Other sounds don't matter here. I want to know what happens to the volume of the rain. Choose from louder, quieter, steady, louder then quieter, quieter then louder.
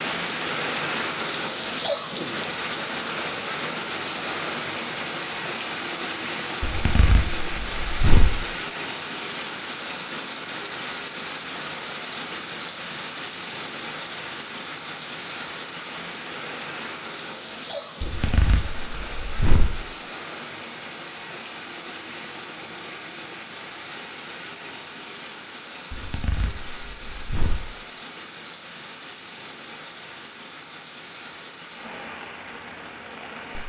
quieter.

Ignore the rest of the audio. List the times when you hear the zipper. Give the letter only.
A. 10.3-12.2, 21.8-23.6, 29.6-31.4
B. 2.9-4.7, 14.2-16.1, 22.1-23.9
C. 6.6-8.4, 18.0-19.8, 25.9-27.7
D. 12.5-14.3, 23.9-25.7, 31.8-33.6
C.